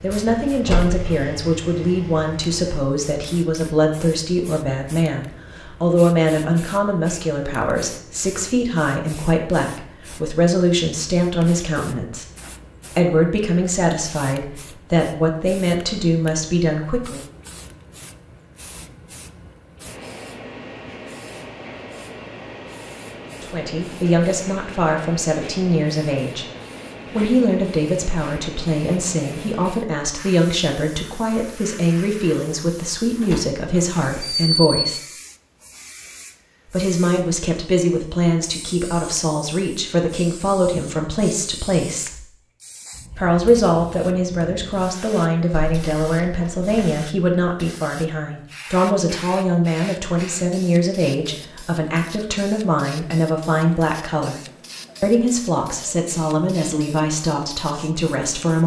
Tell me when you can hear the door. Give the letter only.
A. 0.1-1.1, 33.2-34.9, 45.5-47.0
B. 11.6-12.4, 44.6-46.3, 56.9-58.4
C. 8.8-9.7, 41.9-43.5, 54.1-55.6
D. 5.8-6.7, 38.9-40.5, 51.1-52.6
A.